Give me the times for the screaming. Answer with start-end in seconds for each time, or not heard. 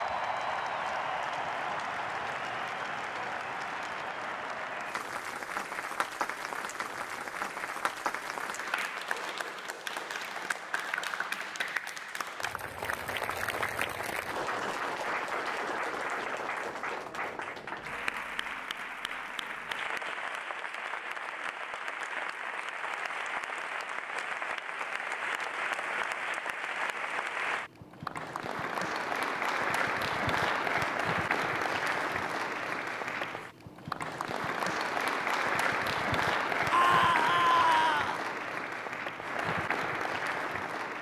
36.7-38.2.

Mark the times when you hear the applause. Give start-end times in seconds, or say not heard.
0.0-40.9.